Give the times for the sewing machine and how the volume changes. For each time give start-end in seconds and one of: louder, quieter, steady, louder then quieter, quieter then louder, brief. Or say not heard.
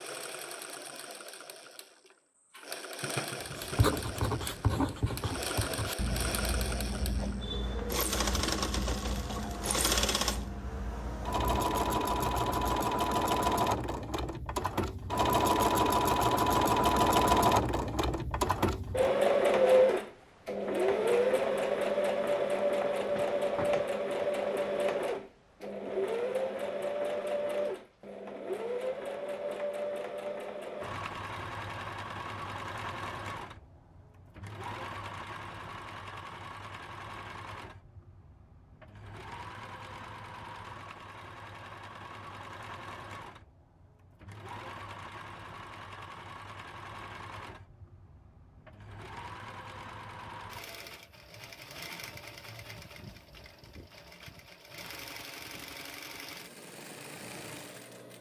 0.0-58.1 louder then quieter.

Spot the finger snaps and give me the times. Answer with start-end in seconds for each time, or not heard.
not heard.